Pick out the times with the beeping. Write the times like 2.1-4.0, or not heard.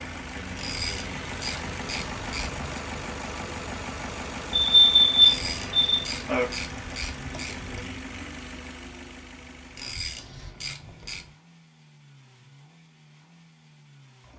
4.5-6.5.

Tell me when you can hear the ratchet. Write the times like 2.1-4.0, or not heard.
0.6-2.9, 5.2-7.8, 9.8-11.3.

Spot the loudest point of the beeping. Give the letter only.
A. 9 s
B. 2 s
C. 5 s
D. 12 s
C.